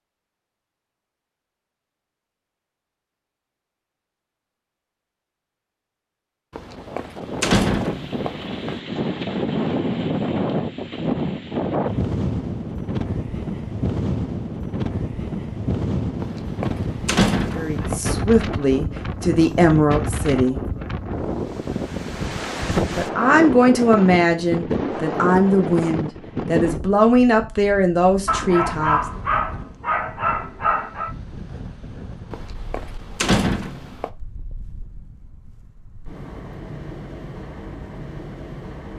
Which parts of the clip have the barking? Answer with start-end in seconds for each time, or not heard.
28.2-31.1.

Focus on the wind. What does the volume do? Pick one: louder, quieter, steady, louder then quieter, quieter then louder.
quieter.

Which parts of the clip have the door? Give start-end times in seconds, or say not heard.
6.5-8.8, 16.2-18.0, 32.3-34.1.